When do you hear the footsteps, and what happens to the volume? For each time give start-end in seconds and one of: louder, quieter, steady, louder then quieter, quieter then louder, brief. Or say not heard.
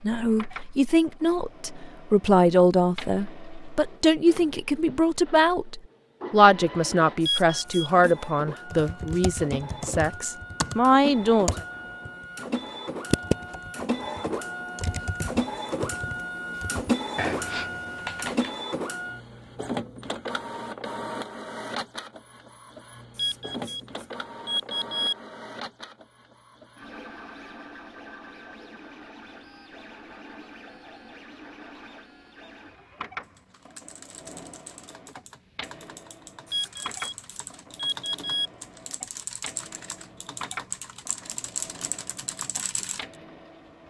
not heard.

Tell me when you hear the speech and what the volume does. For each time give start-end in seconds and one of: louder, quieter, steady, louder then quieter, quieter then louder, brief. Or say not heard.
0.0-11.6 steady.